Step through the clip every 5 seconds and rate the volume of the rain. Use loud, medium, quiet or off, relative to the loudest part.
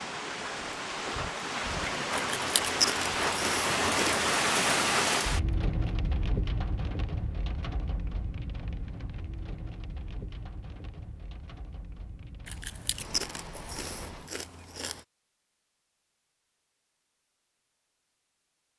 loud, medium, quiet, off.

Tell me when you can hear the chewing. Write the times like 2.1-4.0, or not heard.
2.1-4.2, 12.4-15.1.